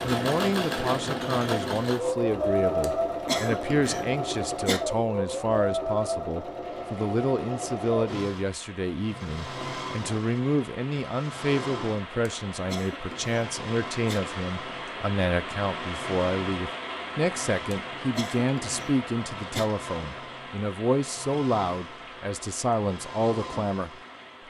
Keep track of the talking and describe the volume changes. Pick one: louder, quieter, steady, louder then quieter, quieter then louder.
steady.